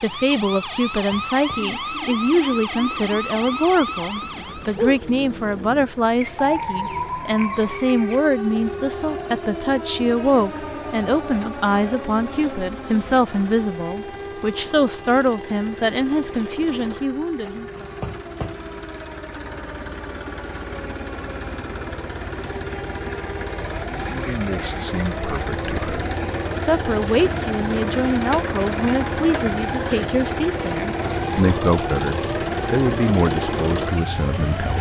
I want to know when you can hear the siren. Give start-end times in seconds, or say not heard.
0.0-34.7.